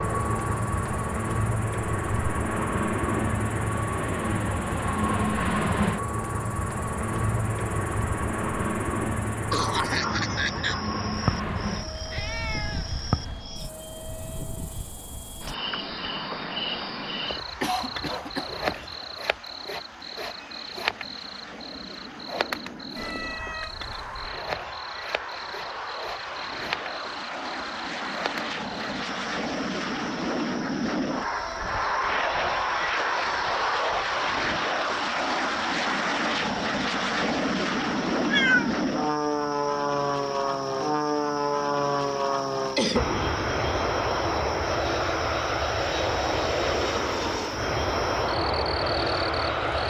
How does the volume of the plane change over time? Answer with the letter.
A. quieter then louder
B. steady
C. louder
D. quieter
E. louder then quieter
A.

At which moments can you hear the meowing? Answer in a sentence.
You can hear the meowing from 11.2 to 13.5 s, from 22.9 to 24.4 s and from 38.1 to 38.8 s.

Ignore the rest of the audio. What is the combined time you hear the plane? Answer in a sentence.
The plane can be heard for 50 seconds in total.